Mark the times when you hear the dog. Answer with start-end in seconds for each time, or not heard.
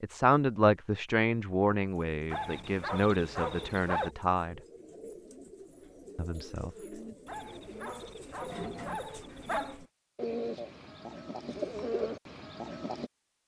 2.2-4.1, 7.2-9.8.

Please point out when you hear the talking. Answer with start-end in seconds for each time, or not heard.
0.0-4.6, 6.2-6.7.